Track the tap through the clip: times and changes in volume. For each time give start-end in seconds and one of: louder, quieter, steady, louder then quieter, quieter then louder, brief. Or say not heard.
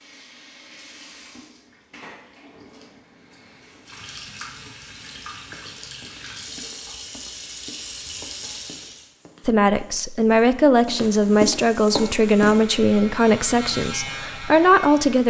0.0-9.1 louder.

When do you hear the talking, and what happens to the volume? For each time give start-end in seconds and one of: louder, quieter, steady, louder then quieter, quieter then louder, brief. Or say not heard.
9.4-15.2 steady.